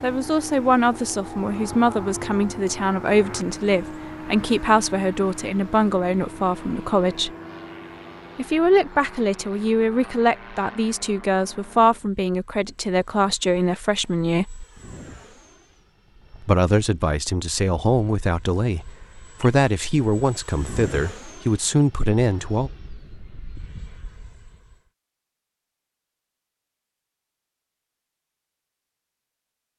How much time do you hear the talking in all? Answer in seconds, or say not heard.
20 s.